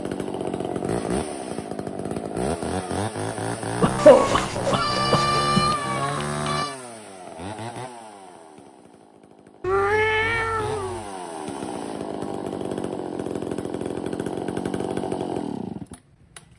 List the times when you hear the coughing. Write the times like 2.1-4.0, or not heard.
3.8-5.8.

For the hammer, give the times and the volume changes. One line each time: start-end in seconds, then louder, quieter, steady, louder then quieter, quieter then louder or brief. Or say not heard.
not heard.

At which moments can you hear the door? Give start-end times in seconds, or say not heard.
not heard.